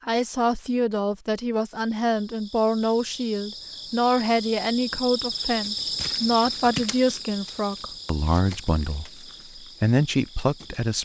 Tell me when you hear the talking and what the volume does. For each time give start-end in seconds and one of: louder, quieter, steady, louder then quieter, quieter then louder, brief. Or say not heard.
0.1-11.0 steady.